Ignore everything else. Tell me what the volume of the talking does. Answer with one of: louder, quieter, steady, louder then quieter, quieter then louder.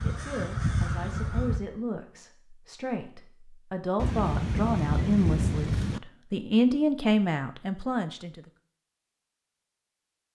louder.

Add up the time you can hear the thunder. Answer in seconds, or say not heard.
2 s.